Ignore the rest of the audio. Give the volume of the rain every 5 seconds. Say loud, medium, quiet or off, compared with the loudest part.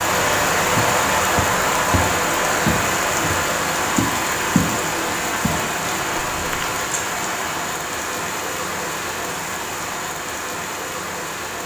loud, medium, medium.